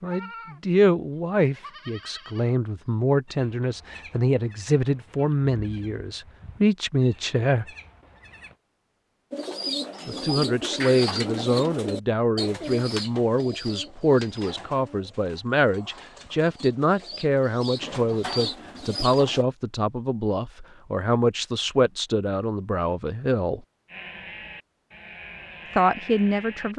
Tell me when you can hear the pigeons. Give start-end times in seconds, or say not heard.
9.3-19.4.